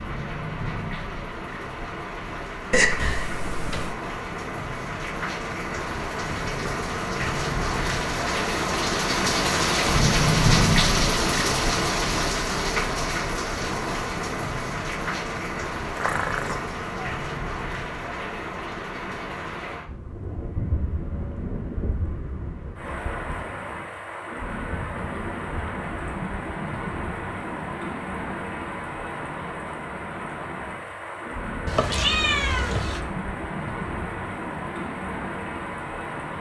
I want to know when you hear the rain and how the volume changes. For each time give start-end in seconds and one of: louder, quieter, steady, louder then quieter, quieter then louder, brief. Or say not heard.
0.0-36.3 louder then quieter.